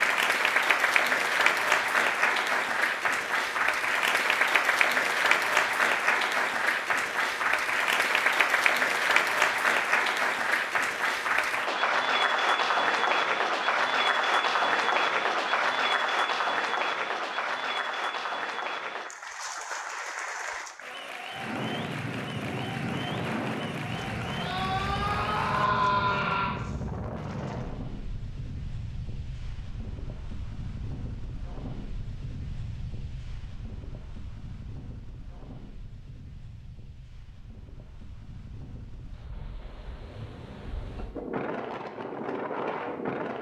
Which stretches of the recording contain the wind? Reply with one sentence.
The wind can be heard from 21.3 to 43.3 s.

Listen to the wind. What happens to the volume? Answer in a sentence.
The volume of the wind goes down, then up.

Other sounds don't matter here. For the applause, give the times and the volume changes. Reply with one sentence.
The applause can be heard from 0.0 to 25.7 s, getting quieter.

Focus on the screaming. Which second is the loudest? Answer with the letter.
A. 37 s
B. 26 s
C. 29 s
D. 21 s
B.